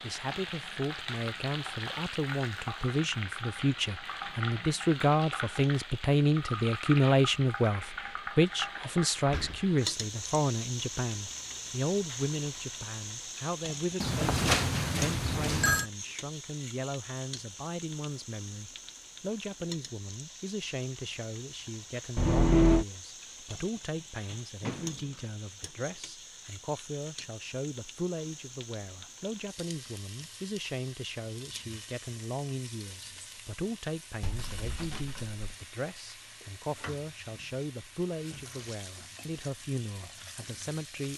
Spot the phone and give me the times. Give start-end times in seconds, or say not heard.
14.0-15.8, 22.1-22.9.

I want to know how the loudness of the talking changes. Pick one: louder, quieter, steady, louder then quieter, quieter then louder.
quieter.